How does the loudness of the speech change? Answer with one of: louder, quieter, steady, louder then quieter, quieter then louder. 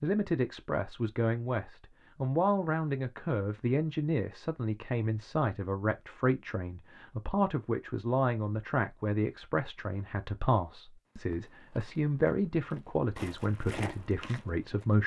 steady.